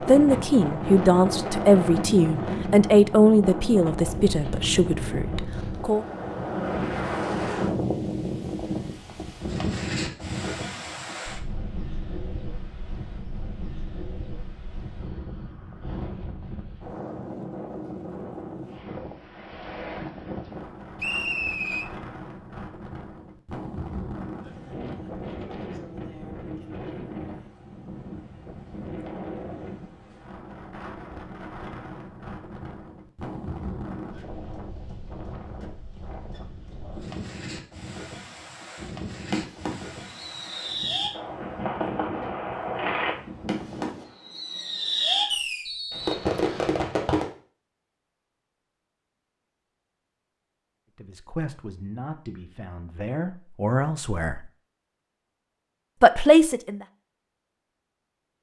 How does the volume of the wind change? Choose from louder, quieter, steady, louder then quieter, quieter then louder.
quieter.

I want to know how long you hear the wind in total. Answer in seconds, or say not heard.
44 s.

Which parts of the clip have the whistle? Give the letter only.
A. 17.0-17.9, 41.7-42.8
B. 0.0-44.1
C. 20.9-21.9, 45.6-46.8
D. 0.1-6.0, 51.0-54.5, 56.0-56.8
C.